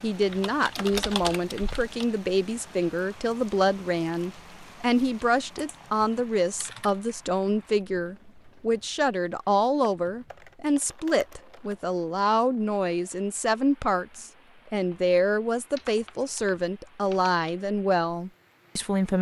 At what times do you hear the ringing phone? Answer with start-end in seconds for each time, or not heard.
not heard.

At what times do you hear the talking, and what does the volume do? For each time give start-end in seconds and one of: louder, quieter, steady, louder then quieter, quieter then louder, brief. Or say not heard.
0.0-19.1 steady.